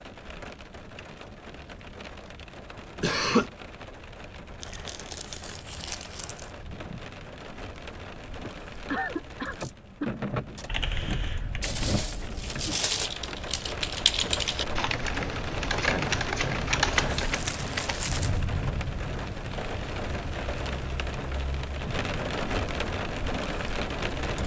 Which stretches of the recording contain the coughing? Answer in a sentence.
The coughing can be heard from 3.0 to 3.5 s, from 8.4 to 10.2 s and from 16.9 to 17.4 s.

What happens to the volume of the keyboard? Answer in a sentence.
The volume of the keyboard goes up.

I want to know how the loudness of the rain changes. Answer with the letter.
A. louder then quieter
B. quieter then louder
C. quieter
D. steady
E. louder
E.